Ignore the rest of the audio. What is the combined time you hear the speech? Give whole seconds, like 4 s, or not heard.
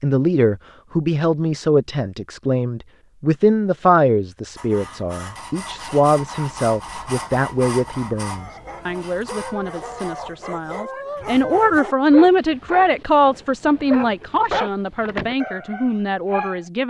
17 s.